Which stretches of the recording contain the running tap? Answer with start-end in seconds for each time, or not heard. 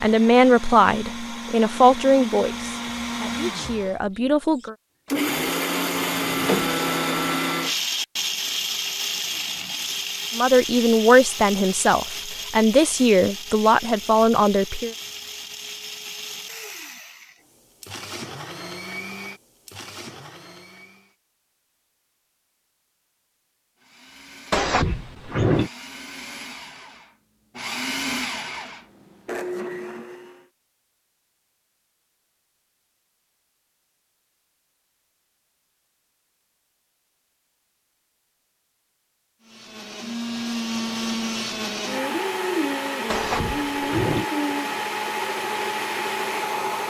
not heard.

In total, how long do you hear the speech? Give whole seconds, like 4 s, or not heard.
9 s.